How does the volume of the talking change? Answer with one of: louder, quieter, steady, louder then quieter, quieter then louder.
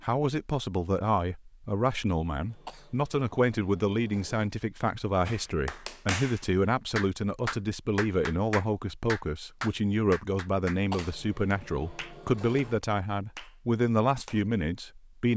steady.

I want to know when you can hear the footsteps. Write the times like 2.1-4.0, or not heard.
not heard.